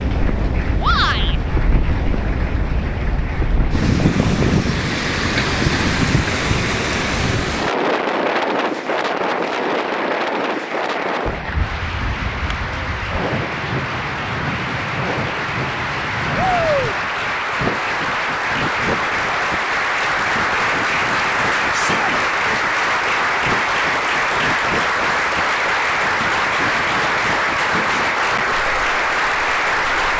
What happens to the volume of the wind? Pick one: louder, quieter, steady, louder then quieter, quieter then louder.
quieter.